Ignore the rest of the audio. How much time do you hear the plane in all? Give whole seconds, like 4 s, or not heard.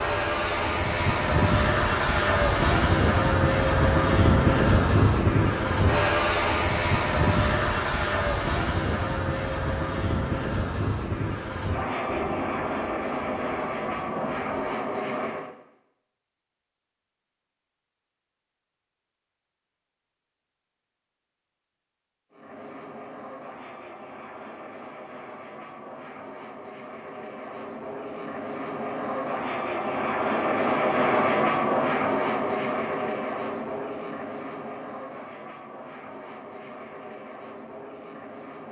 32 s.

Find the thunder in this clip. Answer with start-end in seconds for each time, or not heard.
12.1-14.4.